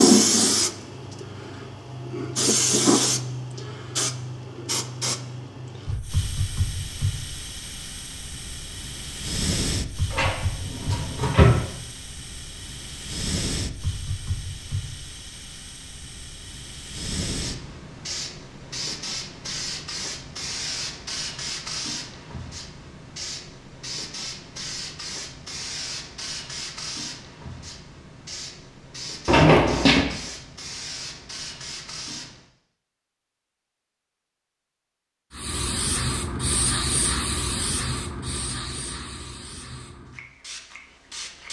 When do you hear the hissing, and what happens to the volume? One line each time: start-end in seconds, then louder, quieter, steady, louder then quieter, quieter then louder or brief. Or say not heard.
0.0-32.4 quieter
35.3-41.4 quieter.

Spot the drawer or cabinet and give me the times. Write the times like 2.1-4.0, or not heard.
10.1-11.6, 29.2-30.1.